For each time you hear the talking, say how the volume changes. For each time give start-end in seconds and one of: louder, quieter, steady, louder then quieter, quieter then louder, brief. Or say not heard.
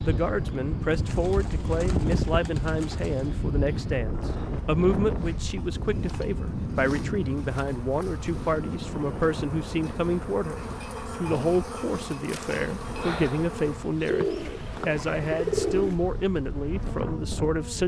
0.0-17.8 steady.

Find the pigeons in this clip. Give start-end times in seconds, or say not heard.
0.9-3.4, 14.1-16.0.